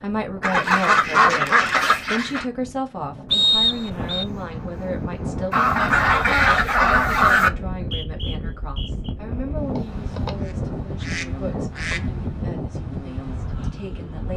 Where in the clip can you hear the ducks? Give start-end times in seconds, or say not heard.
0.4-2.5, 5.5-7.5, 9.8-12.2.